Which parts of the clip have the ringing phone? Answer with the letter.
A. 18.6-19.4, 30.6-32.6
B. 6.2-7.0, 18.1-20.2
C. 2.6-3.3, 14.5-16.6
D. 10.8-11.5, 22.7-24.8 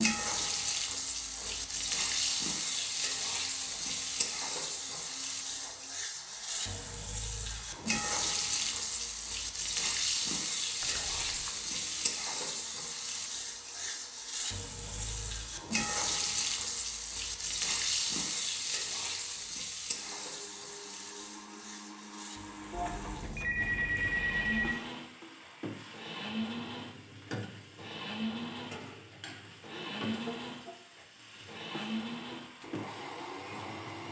D.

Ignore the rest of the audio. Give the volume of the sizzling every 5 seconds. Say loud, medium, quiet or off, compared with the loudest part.
loud, loud, loud, loud, quiet, quiet, quiet.